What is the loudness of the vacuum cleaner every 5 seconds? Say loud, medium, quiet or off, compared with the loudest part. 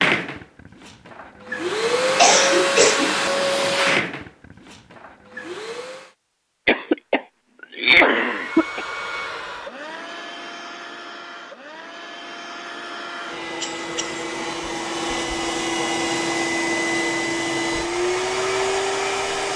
loud, medium, medium, loud.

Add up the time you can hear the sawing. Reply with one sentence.
The sawing can't be heard in this clip.